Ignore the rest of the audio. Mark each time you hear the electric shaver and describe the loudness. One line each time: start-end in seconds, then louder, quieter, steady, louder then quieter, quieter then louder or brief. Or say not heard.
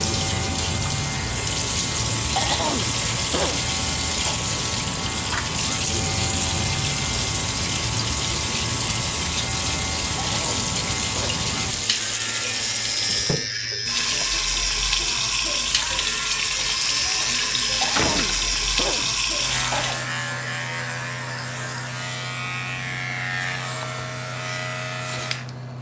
0.0-25.7 steady.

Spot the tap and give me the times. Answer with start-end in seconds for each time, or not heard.
0.0-20.1.